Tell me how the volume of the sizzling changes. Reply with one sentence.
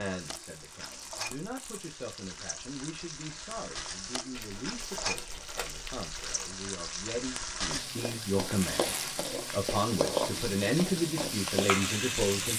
The volume of the sizzling goes up.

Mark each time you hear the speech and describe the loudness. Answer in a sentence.
The speech can be heard from 0.0 to 12.5 s, getting louder.